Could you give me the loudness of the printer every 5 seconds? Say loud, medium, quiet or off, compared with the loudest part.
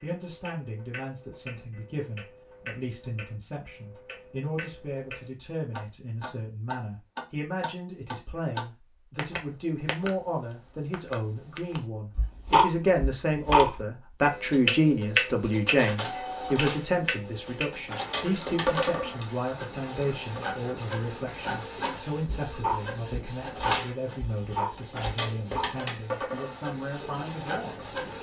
off, off, off, loud, loud, loud.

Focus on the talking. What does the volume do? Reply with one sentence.
The loudness of the talking goes up, then down.